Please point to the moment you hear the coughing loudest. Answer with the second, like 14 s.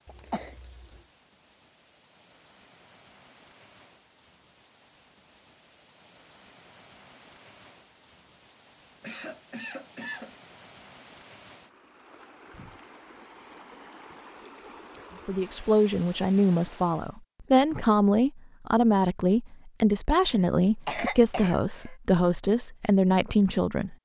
21 s.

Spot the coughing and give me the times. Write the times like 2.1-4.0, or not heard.
0.1-1.0, 9.0-10.3, 20.3-21.9.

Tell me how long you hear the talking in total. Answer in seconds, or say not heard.
9 s.